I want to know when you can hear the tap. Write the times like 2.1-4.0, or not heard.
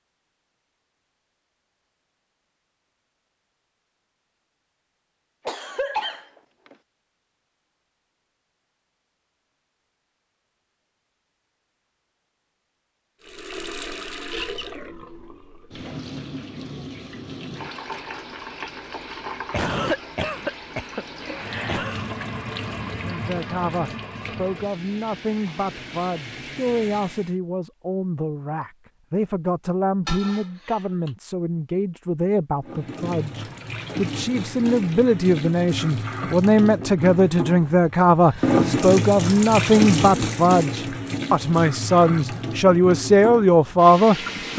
13.2-27.4, 32.6-44.5.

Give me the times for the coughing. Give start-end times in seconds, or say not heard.
5.5-6.8, 19.5-22.1, 30.1-31.1.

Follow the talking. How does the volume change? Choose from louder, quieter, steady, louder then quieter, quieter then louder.
louder.